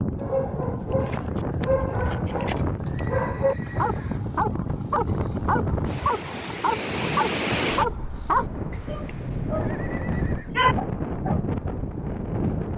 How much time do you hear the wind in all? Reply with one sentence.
You can hear the wind for 13 seconds altogether.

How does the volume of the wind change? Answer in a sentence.
The volume of the wind stays about the same.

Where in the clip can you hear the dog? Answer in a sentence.
You can hear the dog from 0.1 to 11.4 s.